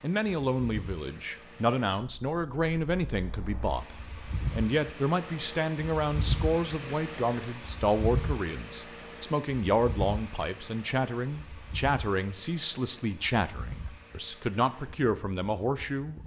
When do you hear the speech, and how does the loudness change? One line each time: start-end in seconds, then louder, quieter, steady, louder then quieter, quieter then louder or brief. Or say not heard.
0.0-16.2 steady.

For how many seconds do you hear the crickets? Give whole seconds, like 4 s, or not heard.
not heard.